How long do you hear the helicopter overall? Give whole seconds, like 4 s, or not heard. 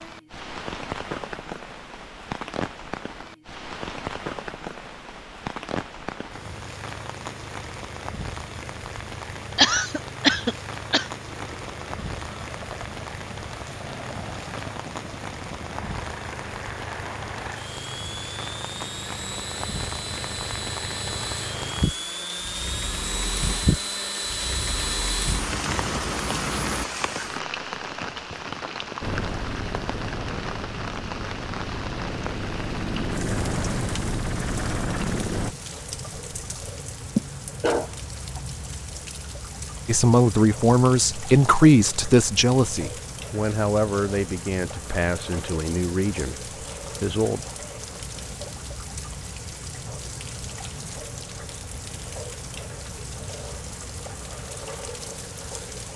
22 s.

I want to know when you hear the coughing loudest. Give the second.
10 s.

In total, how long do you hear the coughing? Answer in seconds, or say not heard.
3 s.